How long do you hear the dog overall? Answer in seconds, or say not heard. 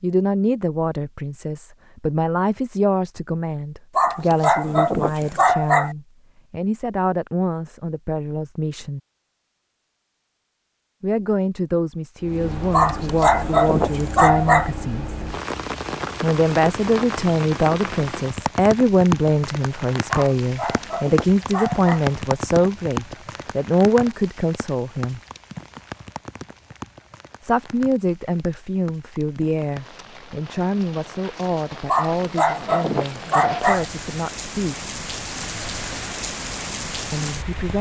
8 s.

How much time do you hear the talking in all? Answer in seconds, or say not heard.
30 s.